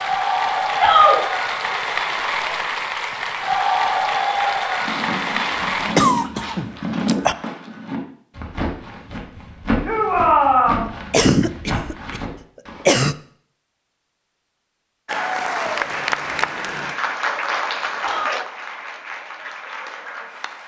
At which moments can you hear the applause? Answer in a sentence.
You can hear the applause from 0.0 to 6.0 s and from 15.1 to 20.6 s.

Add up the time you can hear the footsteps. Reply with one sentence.
The footsteps can be heard for 8 seconds in total.